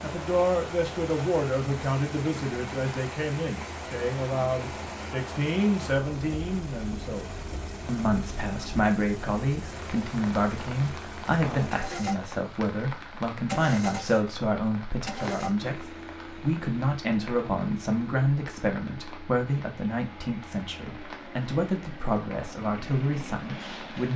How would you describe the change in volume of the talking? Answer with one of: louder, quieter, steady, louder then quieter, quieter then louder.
steady.